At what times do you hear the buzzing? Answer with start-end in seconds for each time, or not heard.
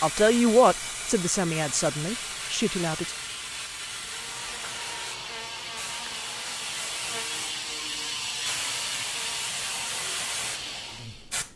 4.1-11.3.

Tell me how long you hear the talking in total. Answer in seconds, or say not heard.
3 s.